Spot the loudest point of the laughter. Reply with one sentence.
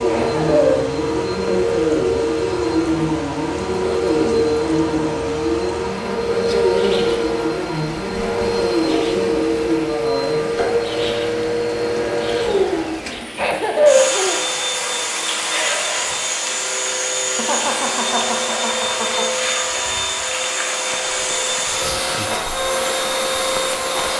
The volume of the laughter peaks at 14 seconds.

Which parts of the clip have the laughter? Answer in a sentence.
The laughter can be heard from 0.1 to 0.8 s, from 13.3 to 14.4 s and from 17.4 to 19.3 s.